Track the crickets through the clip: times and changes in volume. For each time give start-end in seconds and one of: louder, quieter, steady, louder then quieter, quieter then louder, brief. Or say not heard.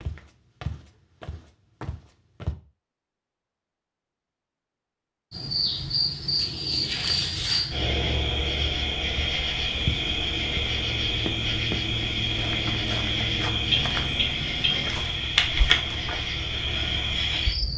5.3-17.7 steady.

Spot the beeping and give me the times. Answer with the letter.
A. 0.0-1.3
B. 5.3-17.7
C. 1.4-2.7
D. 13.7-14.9
D.